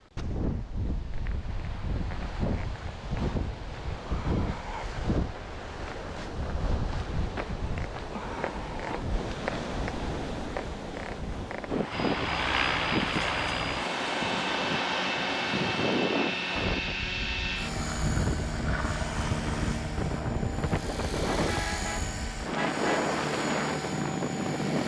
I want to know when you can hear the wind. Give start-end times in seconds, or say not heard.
0.1-24.8.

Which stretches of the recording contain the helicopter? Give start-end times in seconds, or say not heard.
11.9-24.8.